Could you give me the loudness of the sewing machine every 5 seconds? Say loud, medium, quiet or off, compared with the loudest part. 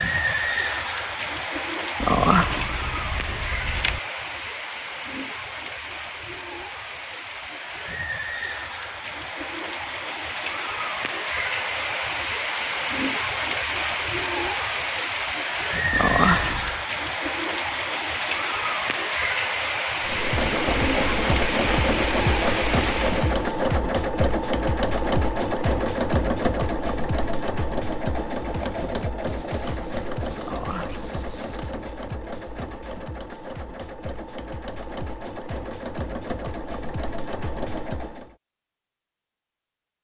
off, off, off, off, loud, loud, medium, medium.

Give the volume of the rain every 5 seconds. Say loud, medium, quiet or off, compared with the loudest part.
loud, medium, loud, loud, loud, off, off, off.